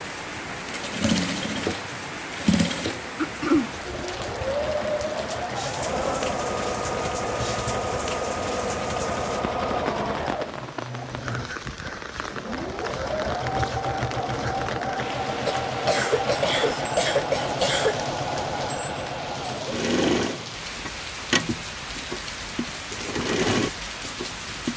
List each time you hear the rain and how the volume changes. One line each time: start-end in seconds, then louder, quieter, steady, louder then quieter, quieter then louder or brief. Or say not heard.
0.0-24.7 steady.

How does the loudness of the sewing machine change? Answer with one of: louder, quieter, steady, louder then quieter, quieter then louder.
steady.